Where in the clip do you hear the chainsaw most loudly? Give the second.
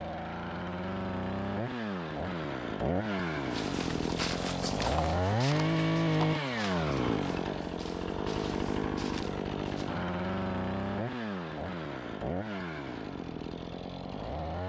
6 s.